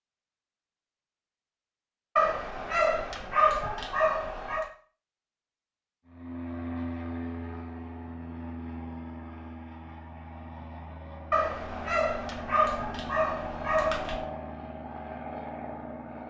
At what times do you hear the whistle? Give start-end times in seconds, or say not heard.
not heard.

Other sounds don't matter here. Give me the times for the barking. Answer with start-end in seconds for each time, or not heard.
2.1-4.7, 11.3-14.2.